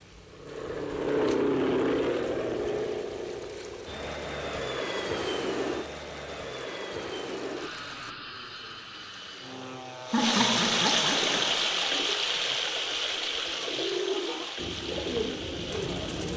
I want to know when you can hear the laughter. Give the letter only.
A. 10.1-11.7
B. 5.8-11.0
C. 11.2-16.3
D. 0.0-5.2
A.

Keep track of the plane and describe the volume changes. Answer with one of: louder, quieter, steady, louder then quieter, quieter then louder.
quieter.